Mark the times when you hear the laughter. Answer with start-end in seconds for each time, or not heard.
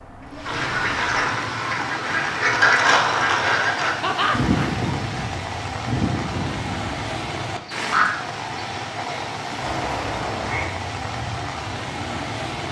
4.0-4.7.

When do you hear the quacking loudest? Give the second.
3 s.